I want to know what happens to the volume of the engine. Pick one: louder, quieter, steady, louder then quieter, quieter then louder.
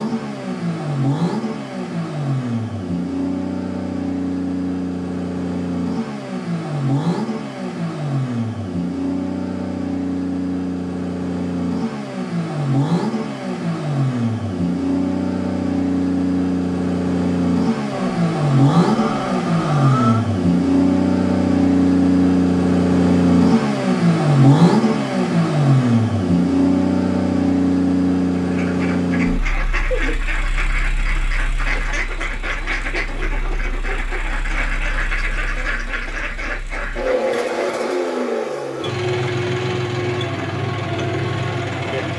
louder then quieter.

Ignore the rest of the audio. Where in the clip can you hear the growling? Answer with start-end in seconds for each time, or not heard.
17.9-20.2.